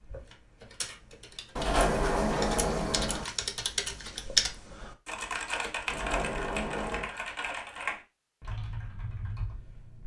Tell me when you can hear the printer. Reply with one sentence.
You can't hear the printer here.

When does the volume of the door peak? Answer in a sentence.
The volume of the door peaks at 2 seconds.